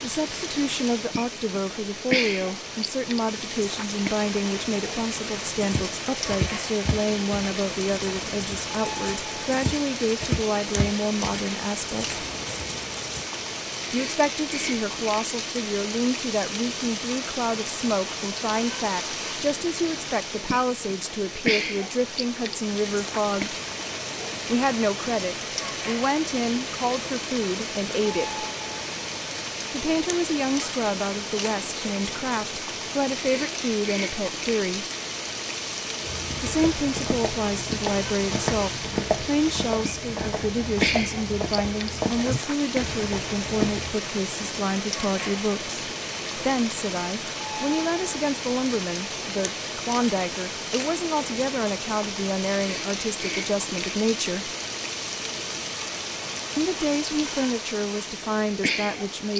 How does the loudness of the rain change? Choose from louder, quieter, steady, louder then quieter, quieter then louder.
steady.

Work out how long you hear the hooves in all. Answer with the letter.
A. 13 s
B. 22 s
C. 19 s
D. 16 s
D.